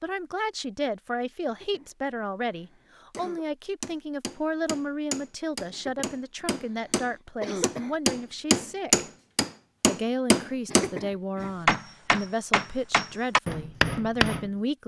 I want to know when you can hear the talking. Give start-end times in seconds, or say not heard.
0.0-9.0, 9.8-14.8.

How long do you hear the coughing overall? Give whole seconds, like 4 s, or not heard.
5 s.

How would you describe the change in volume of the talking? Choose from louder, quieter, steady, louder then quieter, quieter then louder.
steady.